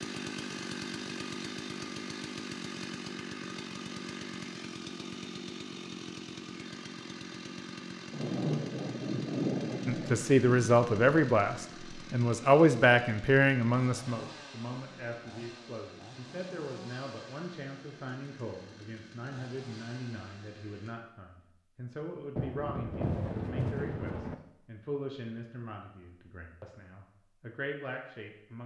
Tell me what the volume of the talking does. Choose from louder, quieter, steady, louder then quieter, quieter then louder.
quieter.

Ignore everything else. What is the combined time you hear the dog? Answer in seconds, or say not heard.
not heard.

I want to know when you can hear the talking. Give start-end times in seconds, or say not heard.
9.8-28.6.